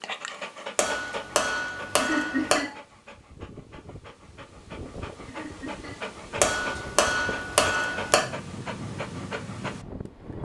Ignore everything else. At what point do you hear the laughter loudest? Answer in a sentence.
The loudest moment of the laughter is at 2 seconds.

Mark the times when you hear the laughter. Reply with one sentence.
The laughter can be heard from 1.9 to 2.8 s and from 5.2 to 6.0 s.